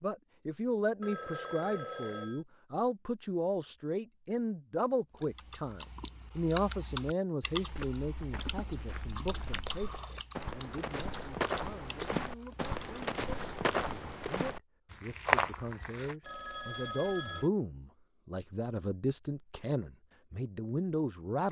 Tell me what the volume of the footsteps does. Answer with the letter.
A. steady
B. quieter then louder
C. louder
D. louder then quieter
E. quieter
C.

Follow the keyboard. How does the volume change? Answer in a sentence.
The volume of the keyboard goes down.